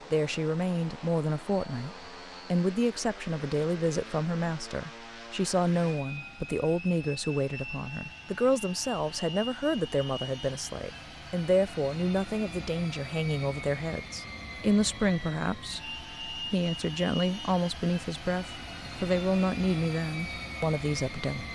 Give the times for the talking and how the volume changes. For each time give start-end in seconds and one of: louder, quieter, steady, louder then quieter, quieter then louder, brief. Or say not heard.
0.1-21.5 steady.